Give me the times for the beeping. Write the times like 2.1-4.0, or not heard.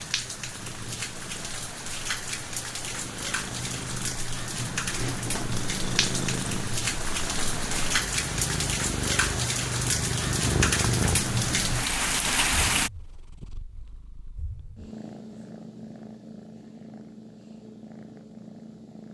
not heard.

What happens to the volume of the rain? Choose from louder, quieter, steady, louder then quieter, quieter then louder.
louder.